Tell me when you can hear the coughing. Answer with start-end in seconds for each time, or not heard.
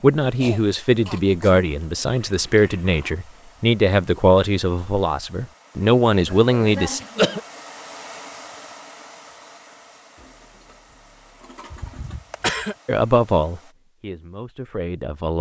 0.3-2.0, 6.1-7.4, 11.7-12.8.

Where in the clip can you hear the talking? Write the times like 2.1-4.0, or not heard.
0.0-7.0, 12.8-15.3.